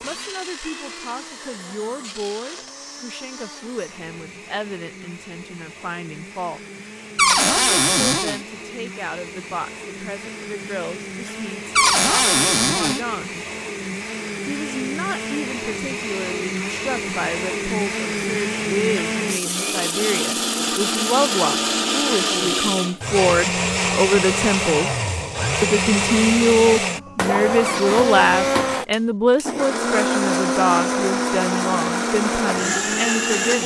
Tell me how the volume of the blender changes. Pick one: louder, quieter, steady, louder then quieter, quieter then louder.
louder.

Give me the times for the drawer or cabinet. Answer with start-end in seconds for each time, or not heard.
7.2-8.4, 11.8-13.0, 27.6-28.6.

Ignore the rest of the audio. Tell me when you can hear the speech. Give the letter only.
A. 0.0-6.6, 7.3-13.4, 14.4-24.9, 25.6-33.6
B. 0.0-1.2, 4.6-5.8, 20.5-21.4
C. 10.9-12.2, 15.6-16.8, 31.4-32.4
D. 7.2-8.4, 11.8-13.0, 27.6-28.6
A.